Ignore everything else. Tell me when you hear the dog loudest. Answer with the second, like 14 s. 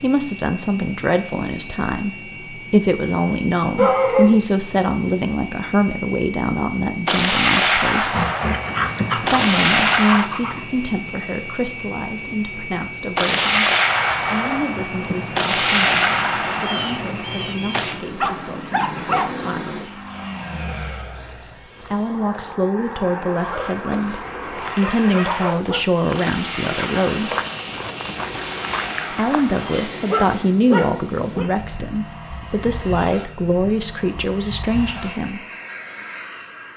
4 s.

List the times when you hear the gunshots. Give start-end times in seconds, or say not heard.
7.0-10.3, 13.2-18.0, 26.1-29.7.